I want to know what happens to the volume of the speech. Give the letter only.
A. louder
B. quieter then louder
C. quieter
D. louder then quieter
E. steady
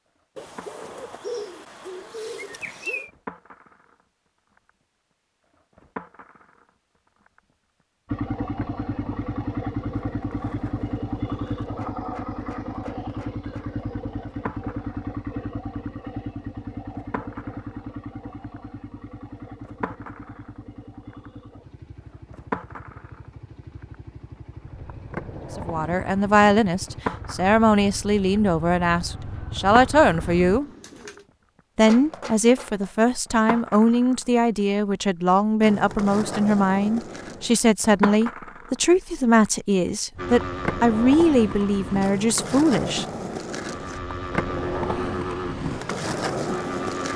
E.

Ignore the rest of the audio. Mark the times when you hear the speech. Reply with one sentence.
The speech can be heard from 25.6 to 30.6 s and from 31.8 to 43.0 s.